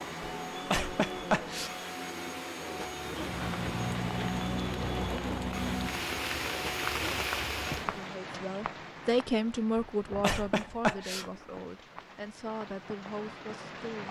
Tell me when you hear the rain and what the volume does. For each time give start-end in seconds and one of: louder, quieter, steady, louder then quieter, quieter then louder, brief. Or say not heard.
3.0-14.0 quieter.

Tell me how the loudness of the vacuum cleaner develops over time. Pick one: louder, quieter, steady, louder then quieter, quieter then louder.
steady.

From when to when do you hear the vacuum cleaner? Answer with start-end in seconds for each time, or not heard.
0.0-8.1.